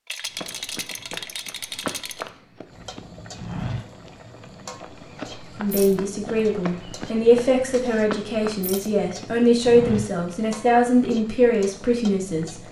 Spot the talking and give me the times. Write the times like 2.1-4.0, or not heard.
5.5-12.6.